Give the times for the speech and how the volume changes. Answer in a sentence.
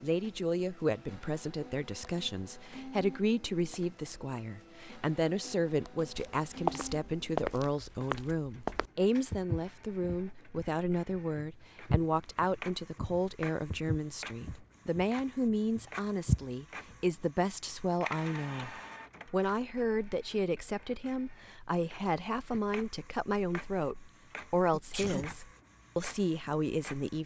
The speech can be heard from 0.0 to 27.2 s, at a steady volume.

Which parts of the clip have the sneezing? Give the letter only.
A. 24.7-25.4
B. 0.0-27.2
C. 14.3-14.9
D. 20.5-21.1
A.